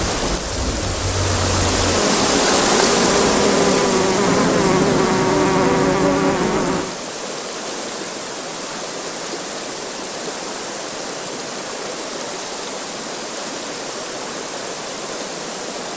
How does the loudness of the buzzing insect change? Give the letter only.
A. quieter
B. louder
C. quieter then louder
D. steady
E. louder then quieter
B.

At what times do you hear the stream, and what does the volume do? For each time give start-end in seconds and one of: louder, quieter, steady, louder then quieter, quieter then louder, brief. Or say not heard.
0.0-15.9 quieter.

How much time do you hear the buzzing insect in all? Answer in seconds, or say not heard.
7 s.